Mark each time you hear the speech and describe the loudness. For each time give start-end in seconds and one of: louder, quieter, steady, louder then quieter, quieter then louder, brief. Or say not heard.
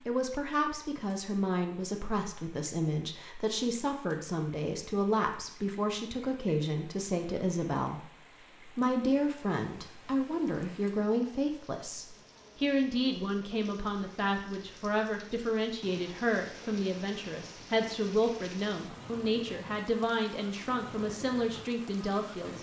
0.1-22.5 steady.